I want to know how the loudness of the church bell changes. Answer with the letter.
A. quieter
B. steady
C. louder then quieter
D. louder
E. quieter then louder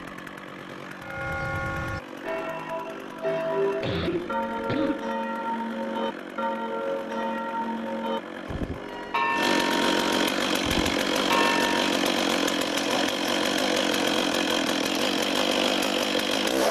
B.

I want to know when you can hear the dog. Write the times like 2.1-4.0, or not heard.
not heard.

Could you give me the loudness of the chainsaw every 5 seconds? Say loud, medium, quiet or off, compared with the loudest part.
quiet, medium, loud, loud.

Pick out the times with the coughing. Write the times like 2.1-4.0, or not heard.
3.8-5.1.